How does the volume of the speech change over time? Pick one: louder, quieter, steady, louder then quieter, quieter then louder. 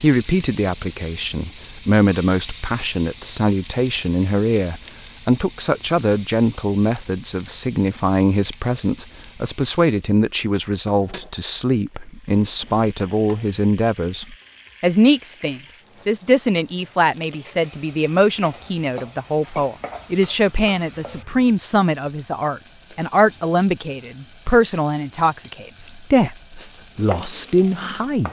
steady.